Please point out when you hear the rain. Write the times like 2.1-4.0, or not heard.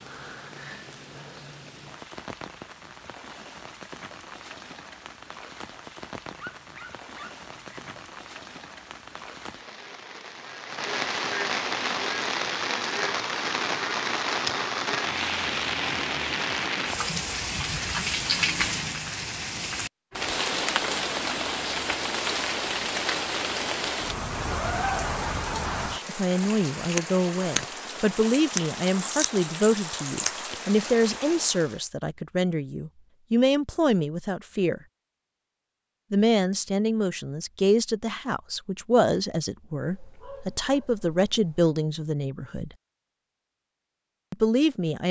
0.0-31.8.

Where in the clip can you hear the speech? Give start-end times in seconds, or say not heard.
25.8-34.8, 36.1-42.7, 44.3-45.0.